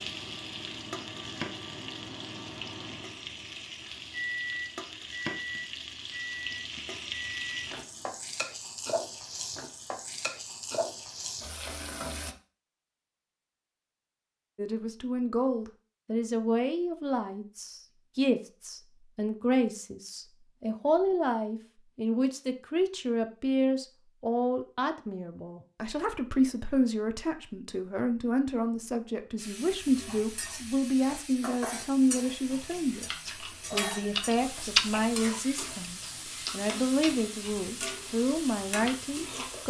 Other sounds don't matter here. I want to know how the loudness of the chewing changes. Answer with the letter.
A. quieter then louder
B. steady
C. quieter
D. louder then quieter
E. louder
D.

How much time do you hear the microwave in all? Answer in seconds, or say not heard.
8 s.